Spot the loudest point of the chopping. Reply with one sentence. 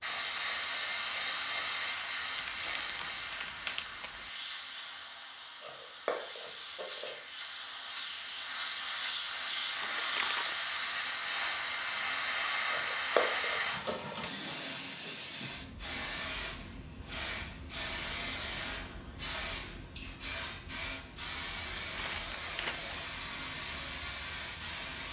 The loudest moment of the chopping is at 13 seconds.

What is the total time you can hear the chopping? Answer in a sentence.
The chopping can be heard for 3 seconds in total.